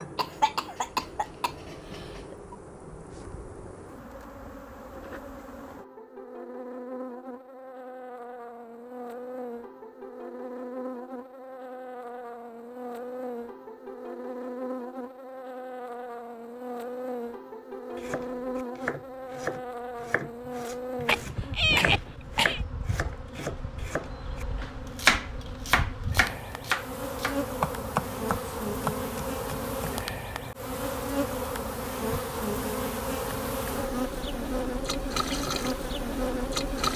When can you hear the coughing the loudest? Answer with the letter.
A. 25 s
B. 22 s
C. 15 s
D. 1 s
B.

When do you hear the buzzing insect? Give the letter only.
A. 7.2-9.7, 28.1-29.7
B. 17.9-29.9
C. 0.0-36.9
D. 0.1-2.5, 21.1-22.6
C.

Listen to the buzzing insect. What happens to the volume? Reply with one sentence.
The loudness of the buzzing insect goes up.